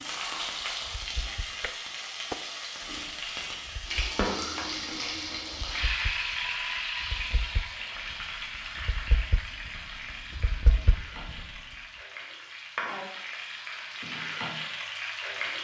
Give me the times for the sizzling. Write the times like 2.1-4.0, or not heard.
0.0-15.5.